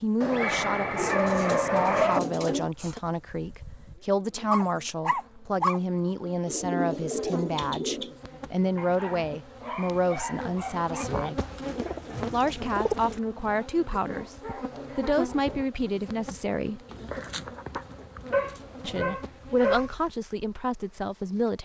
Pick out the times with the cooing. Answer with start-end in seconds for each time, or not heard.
0.9-2.7, 6.5-8.2, 11.3-13.2, 16.9-18.8.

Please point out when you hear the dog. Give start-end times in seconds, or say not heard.
0.2-2.2, 4.5-5.8, 8.8-11.1, 14.0-15.7, 18.3-19.9.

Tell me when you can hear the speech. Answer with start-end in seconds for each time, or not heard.
0.0-11.4, 12.3-16.8, 18.8-21.6.